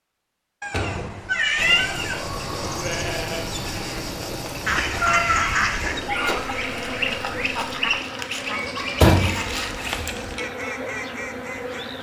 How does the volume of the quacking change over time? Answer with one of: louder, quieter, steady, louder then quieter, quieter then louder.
quieter.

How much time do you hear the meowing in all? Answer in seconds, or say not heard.
5 s.